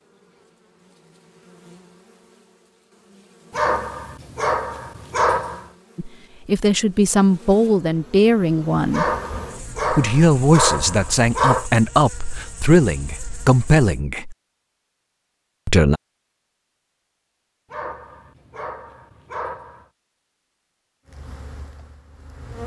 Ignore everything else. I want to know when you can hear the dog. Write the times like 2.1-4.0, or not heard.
3.5-5.7, 8.9-11.7, 17.7-19.9.